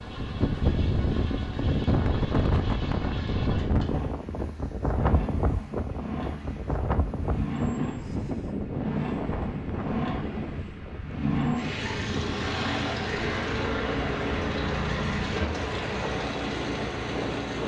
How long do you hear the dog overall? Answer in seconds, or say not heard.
not heard.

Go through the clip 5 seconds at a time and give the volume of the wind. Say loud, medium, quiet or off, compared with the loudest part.
loud, loud, medium, medium.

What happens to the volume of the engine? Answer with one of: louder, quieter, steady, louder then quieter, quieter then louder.
louder.